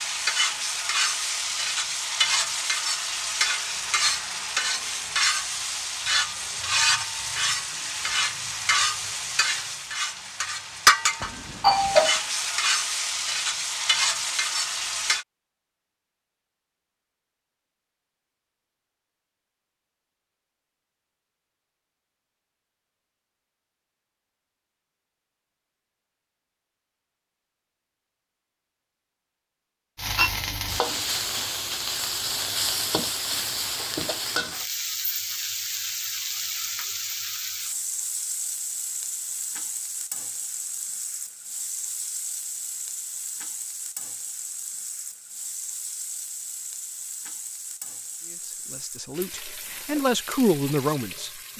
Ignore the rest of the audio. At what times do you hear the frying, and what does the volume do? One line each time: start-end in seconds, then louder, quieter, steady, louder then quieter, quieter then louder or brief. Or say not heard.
0.0-15.2 steady
29.9-51.5 quieter.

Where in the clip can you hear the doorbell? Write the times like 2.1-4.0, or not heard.
11.2-12.2.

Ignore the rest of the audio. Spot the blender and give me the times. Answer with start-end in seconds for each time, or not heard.
not heard.